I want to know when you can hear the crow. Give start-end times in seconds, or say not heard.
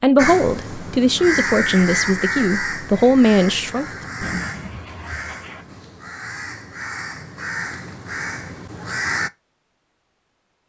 0.1-9.3.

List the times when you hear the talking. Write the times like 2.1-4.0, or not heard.
0.0-3.9.